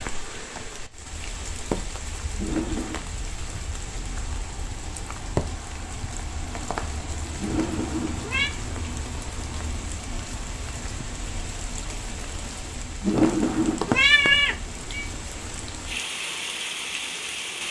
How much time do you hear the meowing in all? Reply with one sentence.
The meowing can be heard for 4 seconds in total.